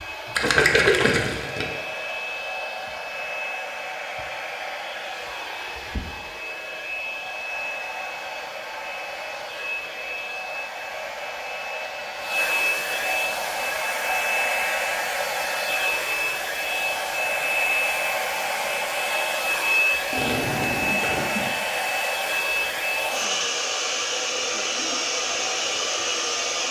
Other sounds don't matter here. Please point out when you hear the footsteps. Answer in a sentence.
The footsteps can't be heard in this clip.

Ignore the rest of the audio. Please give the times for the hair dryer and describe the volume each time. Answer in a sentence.
You can hear the hair dryer from 0.0 to 26.6 s, getting louder.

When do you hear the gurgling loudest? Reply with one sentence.
The loudest moment of the gurgling is at 1 second.